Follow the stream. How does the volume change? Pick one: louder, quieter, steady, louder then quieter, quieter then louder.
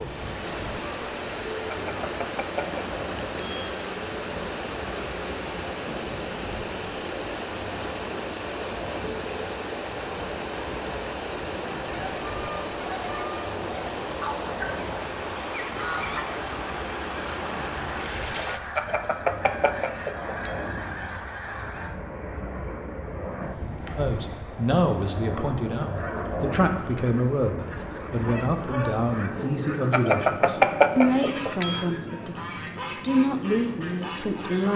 steady.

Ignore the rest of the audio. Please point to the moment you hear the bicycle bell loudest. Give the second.
31 s.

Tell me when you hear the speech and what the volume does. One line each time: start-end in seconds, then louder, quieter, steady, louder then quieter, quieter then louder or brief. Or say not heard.
23.9-34.7 steady.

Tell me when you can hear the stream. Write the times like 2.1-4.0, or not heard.
0.0-18.6.